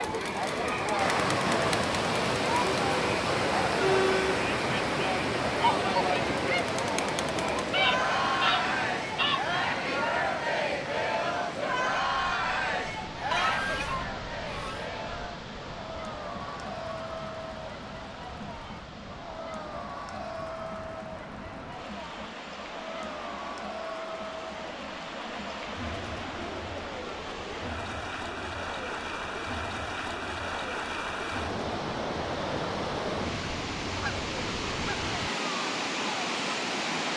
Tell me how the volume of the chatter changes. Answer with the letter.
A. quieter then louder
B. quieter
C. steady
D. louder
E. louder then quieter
B.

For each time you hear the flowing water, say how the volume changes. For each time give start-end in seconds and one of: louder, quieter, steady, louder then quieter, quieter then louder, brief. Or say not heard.
0.2-37.1 quieter then louder.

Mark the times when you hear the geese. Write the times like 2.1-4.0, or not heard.
7.7-9.4, 13.3-14.9, 33.2-35.3.